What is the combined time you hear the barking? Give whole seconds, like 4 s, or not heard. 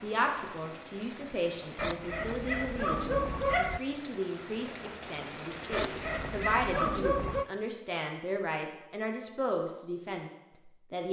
4 s.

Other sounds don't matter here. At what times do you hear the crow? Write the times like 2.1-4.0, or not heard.
not heard.